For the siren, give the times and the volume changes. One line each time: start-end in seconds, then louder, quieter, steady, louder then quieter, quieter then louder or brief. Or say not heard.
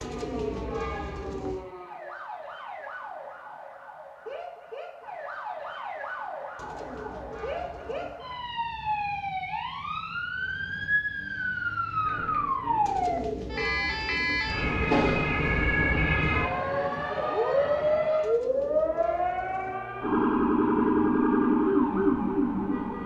0.0-23.0 louder.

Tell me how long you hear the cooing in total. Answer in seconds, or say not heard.
7 s.